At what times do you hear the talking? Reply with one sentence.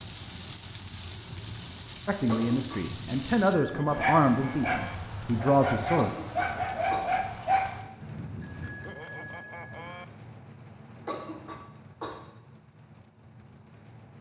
The talking can be heard from 2.0 to 6.1 s.